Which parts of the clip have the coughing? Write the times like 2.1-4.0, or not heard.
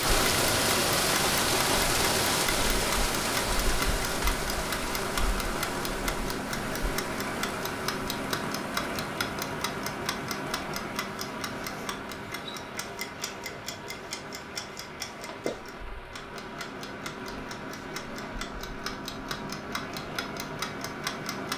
not heard.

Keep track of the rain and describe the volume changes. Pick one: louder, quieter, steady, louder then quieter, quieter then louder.
quieter.